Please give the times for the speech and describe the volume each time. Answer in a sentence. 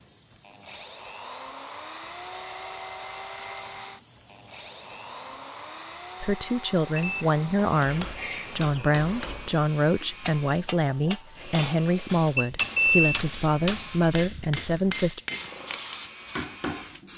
You can hear the speech from 6.2 to 15.2 s, at a steady volume.